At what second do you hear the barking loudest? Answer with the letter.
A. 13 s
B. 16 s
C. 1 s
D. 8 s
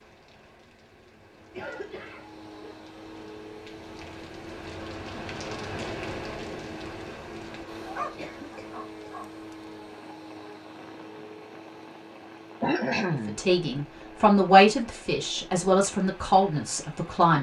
D.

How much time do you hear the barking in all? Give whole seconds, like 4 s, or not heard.
2 s.